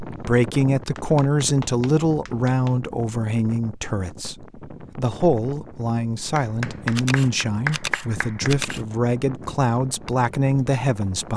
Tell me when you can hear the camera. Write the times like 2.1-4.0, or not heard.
6.9-8.8.